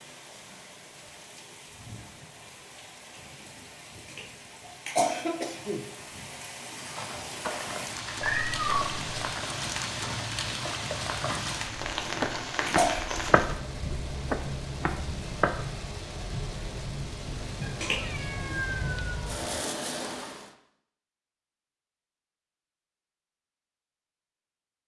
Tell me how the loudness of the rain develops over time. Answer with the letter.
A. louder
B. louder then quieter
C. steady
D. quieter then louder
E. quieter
A.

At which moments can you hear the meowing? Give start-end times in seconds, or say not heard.
8.2-9.1, 17.6-19.6.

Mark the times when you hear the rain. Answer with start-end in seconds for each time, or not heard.
0.0-20.5.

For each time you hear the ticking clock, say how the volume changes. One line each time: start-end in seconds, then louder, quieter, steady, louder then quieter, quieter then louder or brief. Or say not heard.
not heard.